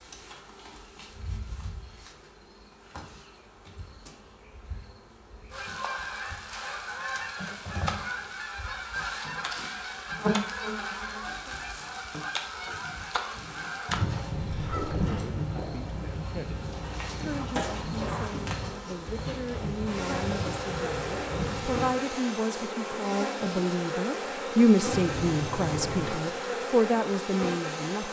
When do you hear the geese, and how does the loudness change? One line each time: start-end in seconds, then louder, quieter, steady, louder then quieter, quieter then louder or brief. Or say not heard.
5.5-15.0 steady.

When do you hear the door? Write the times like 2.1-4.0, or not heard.
24.9-26.2.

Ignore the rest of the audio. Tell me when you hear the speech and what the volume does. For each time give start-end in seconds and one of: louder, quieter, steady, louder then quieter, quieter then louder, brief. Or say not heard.
15.1-28.0 louder.